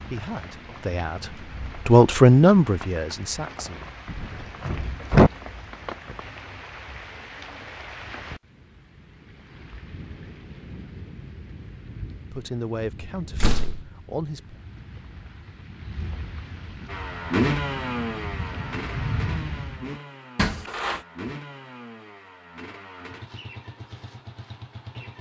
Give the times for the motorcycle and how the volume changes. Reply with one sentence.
You can hear the motorcycle from 16.9 to 25.1 s, getting quieter.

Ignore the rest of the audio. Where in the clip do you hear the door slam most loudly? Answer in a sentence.
The volume of the door slam peaks at 5 seconds.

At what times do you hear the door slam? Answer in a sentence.
You can hear the door slam from 4.0 to 5.3 s, from 13.3 to 13.8 s and from 20.4 to 21.0 s.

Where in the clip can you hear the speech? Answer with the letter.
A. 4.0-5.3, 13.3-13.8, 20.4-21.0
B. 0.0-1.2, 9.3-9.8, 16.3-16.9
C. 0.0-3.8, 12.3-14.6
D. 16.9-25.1
C.